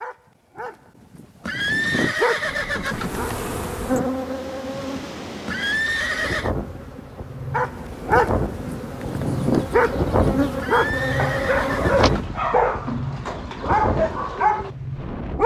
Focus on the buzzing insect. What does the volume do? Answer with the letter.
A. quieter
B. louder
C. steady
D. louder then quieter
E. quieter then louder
E.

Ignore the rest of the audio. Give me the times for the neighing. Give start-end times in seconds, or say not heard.
1.4-3.2, 5.5-6.5, 10.6-12.2.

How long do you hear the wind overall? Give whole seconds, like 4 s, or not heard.
13 s.